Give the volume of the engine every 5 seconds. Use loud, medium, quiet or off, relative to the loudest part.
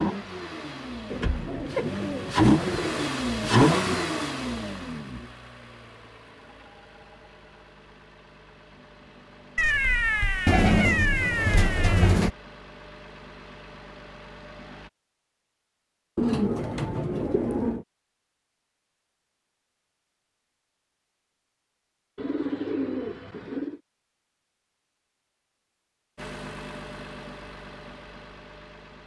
loud, quiet, quiet, off, off, quiet.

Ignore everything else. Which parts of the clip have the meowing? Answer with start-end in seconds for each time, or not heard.
9.6-12.2.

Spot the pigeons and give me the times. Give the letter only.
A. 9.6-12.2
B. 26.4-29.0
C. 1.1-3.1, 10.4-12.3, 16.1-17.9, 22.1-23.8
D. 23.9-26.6
C.